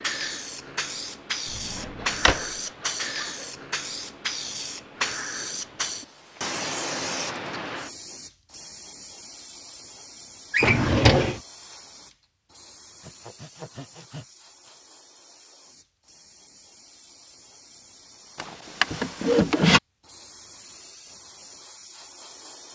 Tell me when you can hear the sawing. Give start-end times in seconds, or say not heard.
1.6-3.6, 13.0-14.8.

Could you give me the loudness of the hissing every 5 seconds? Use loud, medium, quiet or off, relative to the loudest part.
loud, loud, quiet, quiet, quiet.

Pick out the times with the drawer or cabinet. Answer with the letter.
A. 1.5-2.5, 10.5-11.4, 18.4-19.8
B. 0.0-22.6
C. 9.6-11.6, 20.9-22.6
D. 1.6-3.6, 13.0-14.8
A.